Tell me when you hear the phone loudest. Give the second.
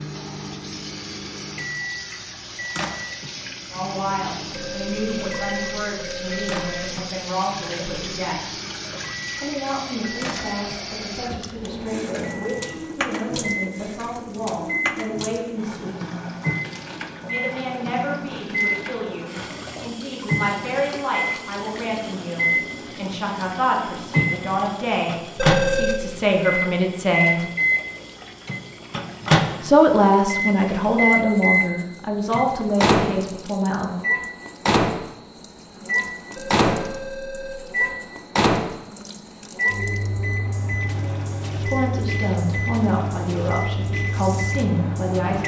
26 s.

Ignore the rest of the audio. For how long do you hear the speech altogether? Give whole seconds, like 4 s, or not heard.
30 s.